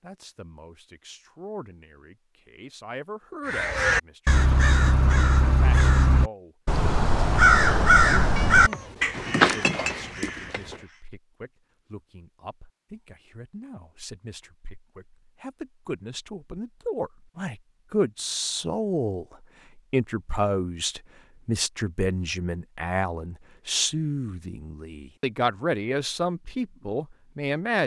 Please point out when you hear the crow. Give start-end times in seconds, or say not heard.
3.5-11.0.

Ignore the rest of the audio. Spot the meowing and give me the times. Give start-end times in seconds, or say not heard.
8.3-10.8.